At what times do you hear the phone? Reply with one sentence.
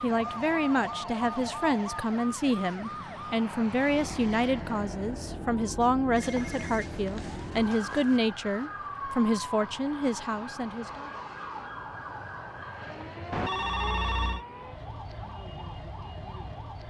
You can hear the phone from 0.1 to 2.1 s, from 6.2 to 8.2 s and from 13.3 to 14.4 s.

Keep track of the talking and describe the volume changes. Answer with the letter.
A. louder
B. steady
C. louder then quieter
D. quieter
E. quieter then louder
B.